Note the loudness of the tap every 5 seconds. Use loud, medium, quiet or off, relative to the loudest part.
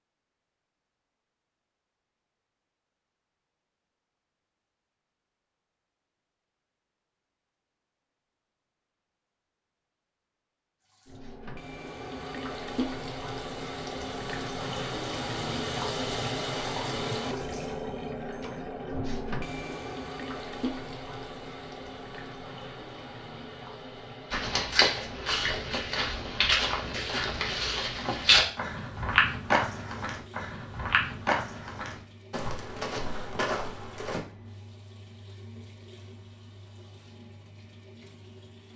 off, off, loud, loud, medium, quiet, quiet, quiet.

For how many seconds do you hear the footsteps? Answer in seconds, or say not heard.
10 s.